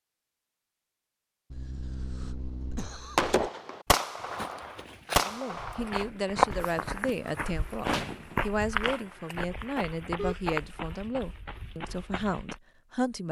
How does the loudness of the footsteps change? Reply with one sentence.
The volume of the footsteps goes up, then down.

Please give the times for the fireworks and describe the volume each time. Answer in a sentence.
You can hear the fireworks from 3.1 to 8.5 s, getting quieter then louder.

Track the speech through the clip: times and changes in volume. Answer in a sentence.
The speech can be heard from 5.2 to 13.2 s, at a steady volume.